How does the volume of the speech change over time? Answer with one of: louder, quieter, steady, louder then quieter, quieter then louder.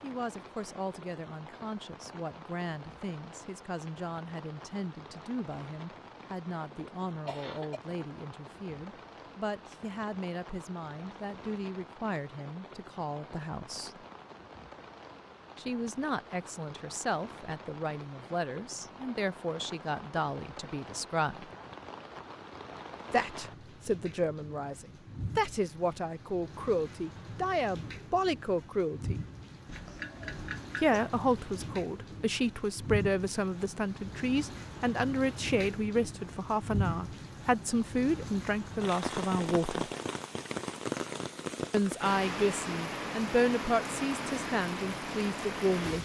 louder.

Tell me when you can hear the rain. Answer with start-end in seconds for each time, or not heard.
0.0-45.9.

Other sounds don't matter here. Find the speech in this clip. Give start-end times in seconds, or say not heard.
0.0-14.0, 15.6-21.4, 23.1-29.2, 30.8-39.9, 41.7-45.9.